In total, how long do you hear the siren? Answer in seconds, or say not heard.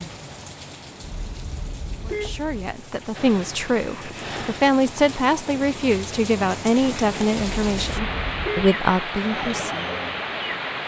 2 s.